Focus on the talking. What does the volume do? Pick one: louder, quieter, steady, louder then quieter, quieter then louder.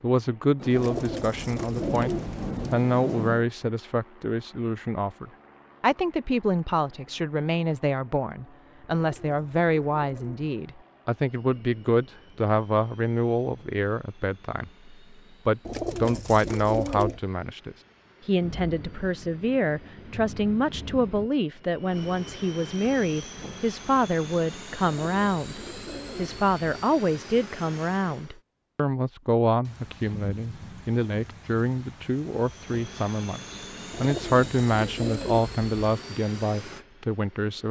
steady.